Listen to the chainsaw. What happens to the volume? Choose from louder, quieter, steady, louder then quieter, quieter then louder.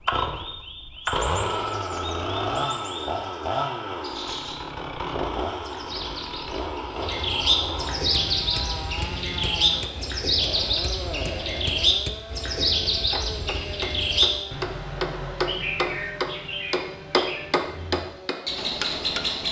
quieter.